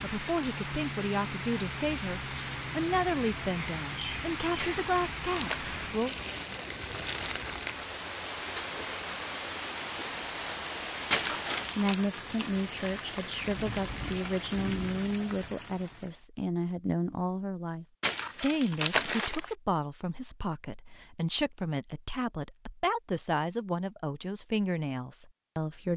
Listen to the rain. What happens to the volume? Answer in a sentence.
The loudness of the rain stays about the same.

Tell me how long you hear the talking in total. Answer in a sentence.
You can hear the talking for 20 seconds altogether.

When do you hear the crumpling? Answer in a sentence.
The crumpling can be heard from 4.5 to 5.8 s, from 11.1 to 12.0 s and from 18.0 to 19.6 s.